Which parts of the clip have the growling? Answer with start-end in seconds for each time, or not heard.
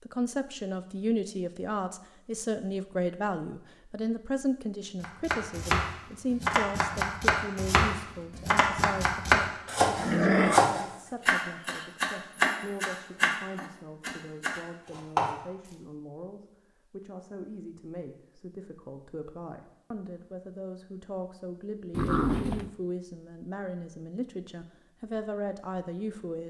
9.9-10.7, 21.9-22.7.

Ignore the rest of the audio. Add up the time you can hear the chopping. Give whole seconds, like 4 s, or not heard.
11 s.